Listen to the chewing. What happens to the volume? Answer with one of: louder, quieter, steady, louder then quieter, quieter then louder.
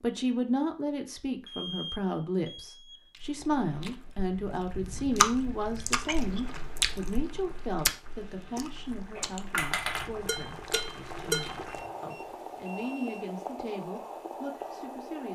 louder then quieter.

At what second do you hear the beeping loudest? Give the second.
2 s.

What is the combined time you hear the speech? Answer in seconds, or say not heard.
15 s.